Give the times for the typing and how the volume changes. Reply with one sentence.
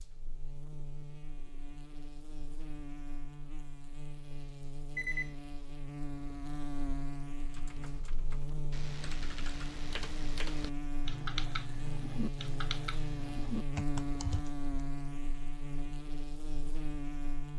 You can hear the typing from 7.3 to 14.7 s, getting louder.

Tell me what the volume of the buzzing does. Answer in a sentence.
The volume of the buzzing goes up.